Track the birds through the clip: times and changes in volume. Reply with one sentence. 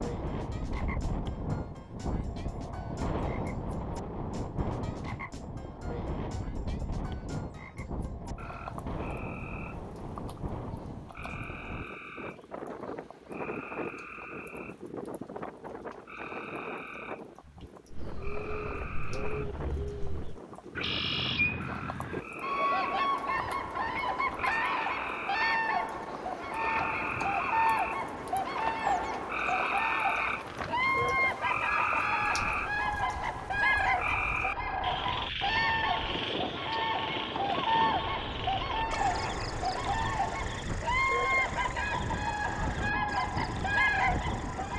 You can hear the birds from 17.9 to 44.7 s, at a steady volume.